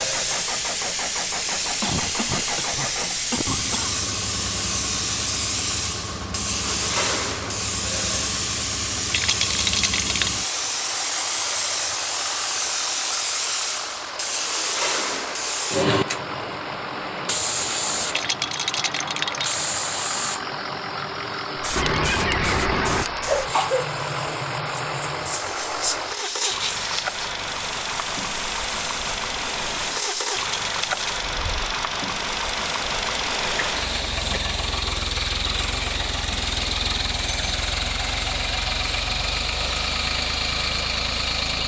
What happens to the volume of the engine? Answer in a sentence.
The volume of the engine goes up.